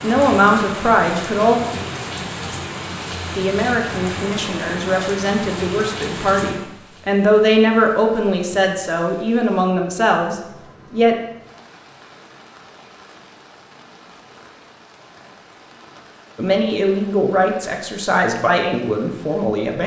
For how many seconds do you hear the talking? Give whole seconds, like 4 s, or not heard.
13 s.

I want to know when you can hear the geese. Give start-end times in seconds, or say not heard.
not heard.